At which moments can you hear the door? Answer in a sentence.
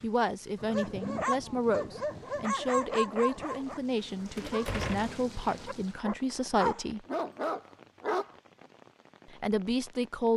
You can hear the door from 4.3 to 5.2 s.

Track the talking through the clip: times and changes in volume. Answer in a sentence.
You can hear the talking from 0.0 to 7.0 s, at a steady volume; and briefly from 9.3 to 10.3 s.